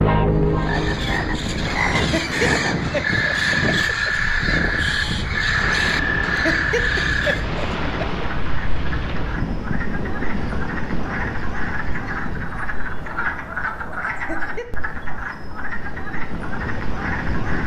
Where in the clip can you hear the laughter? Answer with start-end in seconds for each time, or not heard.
1.9-4.1, 6.4-8.2, 14.2-14.8.